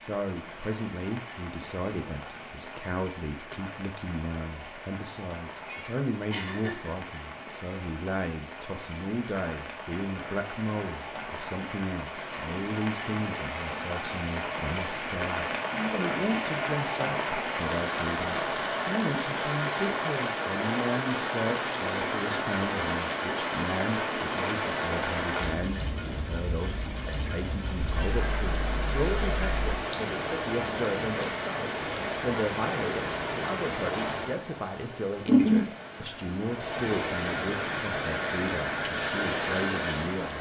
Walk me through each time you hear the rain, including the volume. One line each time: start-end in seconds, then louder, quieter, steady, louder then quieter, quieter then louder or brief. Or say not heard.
0.0-40.3 louder.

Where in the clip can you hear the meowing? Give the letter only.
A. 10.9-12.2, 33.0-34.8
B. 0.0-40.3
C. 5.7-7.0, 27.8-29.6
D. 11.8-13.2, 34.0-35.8
C.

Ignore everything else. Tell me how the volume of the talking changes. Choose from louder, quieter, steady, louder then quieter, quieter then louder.
steady.